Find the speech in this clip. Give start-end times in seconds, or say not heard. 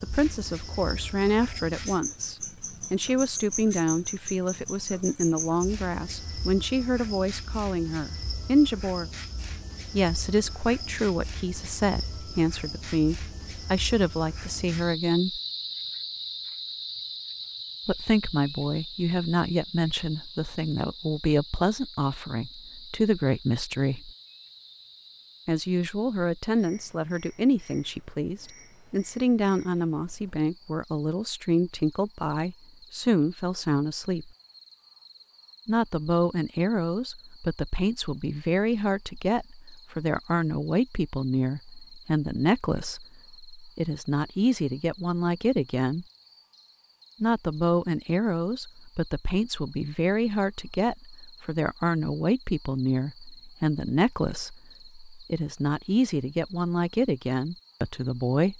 0.0-9.1, 9.9-15.4, 17.9-24.1, 25.4-34.3, 35.6-46.0, 47.2-58.5.